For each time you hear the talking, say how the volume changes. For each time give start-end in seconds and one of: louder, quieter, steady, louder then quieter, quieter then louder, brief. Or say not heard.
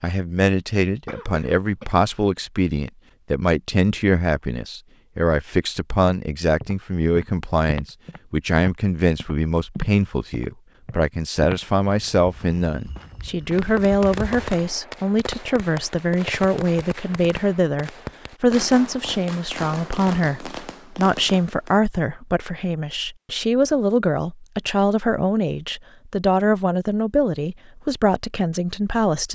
0.0-29.3 steady.